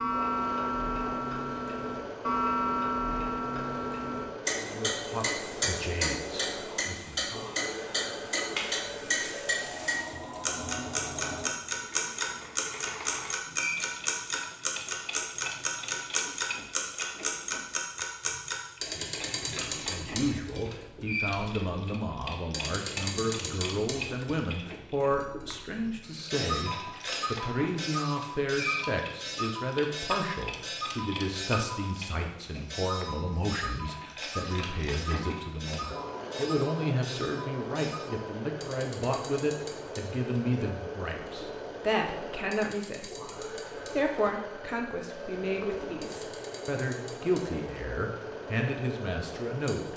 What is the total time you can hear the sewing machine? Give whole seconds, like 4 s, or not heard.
50 s.